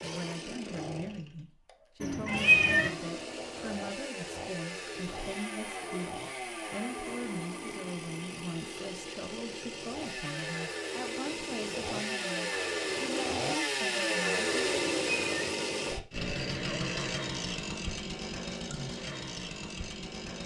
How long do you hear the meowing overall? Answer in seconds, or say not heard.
2 s.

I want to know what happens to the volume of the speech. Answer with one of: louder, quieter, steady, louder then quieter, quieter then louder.
steady.